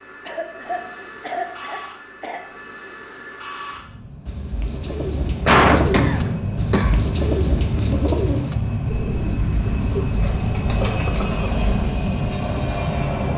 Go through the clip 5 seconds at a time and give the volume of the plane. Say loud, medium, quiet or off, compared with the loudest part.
quiet, loud, loud.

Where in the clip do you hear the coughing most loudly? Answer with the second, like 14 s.
6 s.